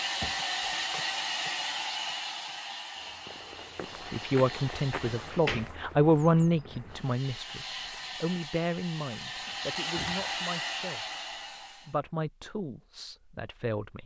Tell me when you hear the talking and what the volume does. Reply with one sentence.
The talking can be heard from 4.1 to 11.1 s, getting louder then quieter; and briefly from 11.8 to 14.0 s.